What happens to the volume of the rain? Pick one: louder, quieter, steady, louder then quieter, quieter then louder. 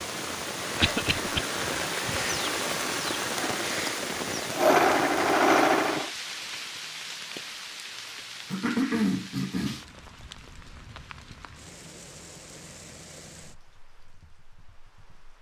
quieter.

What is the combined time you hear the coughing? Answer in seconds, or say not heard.
2 s.